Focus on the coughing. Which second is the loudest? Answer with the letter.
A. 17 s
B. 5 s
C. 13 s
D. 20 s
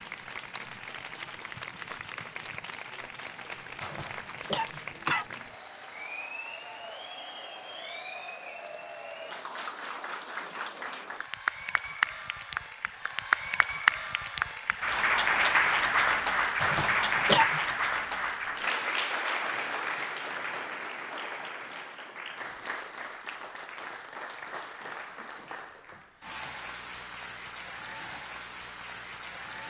A.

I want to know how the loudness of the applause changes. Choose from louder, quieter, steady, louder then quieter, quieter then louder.
louder then quieter.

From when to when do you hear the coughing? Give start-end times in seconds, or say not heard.
3.8-5.2, 16.6-17.6.